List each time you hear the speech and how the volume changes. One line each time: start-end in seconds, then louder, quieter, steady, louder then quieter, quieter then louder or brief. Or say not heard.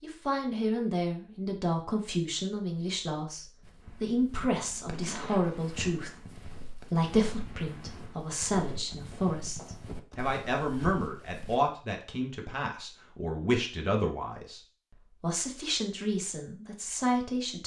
0.0-14.6 steady
15.2-17.6 brief.